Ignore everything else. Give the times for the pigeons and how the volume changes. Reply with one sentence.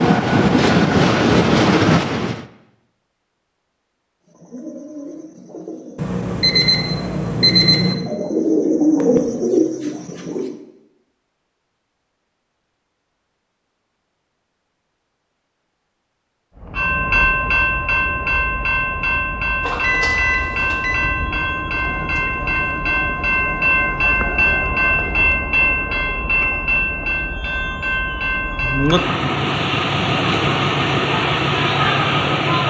You can hear the pigeons from 4.2 to 10.6 s, getting louder.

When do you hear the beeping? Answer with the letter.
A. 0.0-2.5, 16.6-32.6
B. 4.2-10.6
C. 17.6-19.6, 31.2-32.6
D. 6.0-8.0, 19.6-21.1
D.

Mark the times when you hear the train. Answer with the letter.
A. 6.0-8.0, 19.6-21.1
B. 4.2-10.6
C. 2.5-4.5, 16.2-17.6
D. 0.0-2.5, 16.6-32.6
D.